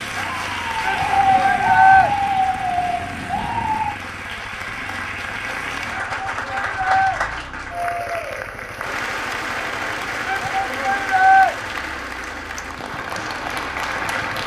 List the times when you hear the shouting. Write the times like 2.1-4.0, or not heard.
0.8-2.1, 5.9-7.2, 10.2-11.6.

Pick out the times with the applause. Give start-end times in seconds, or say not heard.
0.0-14.4.